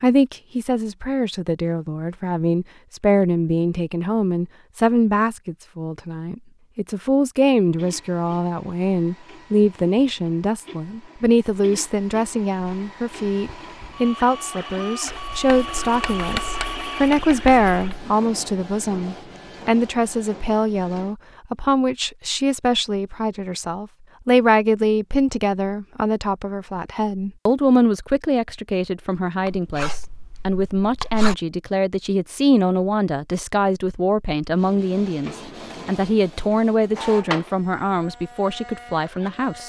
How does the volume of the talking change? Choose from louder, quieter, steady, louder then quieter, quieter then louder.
steady.